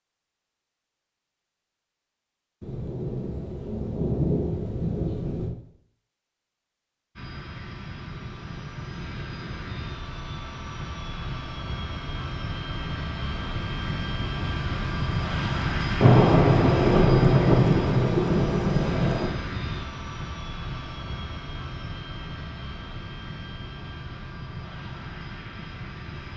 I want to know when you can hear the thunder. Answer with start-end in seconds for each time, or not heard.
2.6-5.5, 16.0-19.3.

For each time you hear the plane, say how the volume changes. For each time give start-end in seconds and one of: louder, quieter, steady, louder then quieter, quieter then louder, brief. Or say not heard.
7.2-26.3 louder then quieter.